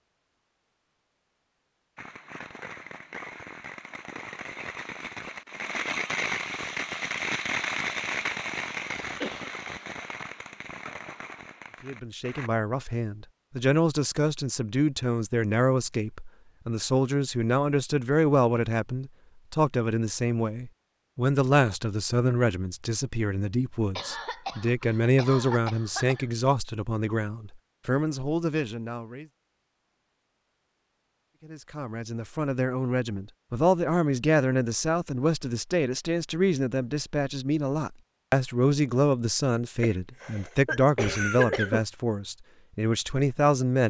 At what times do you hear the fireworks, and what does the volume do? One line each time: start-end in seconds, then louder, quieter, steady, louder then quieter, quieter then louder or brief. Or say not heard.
1.9-12.5 louder then quieter.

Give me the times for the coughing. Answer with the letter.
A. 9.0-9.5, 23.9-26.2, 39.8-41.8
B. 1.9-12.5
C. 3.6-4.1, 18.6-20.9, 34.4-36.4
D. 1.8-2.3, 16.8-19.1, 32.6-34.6
A.